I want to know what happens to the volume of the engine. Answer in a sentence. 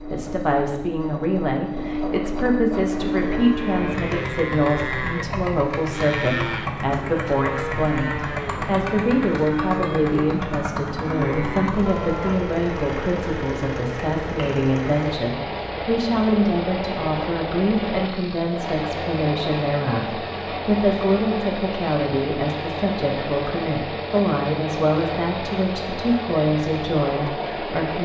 The loudness of the engine stays about the same.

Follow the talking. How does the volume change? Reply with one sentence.
The loudness of the talking stays about the same.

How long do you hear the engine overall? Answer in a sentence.
You can hear the engine for 28 seconds altogether.